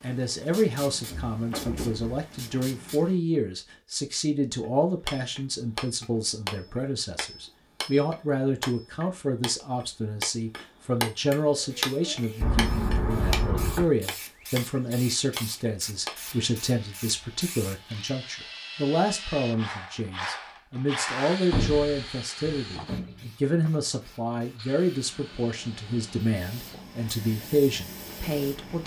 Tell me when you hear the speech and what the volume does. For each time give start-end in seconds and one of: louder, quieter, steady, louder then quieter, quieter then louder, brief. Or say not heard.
0.0-28.8 steady.